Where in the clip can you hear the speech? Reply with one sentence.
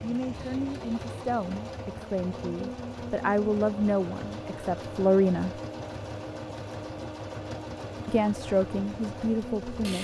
You can hear the speech from 0.0 to 5.5 s and from 8.1 to 9.9 s.